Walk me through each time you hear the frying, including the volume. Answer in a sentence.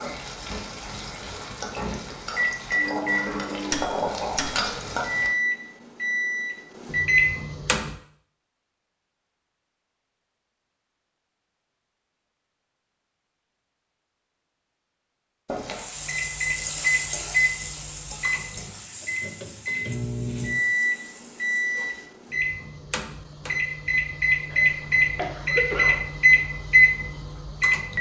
The frying can be heard from 0.0 to 5.3 s, getting louder; and from 15.4 to 22.1 s, getting quieter.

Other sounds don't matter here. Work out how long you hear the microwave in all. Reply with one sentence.
You can hear the microwave for 18 seconds altogether.